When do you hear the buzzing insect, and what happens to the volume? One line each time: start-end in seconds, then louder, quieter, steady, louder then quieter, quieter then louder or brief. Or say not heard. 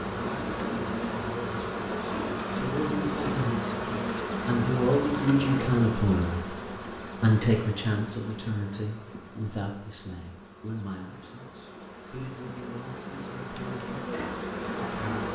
0.0-15.3 quieter then louder.